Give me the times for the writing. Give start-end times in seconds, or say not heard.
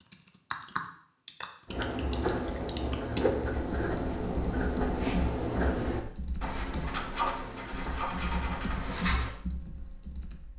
1.6-9.3.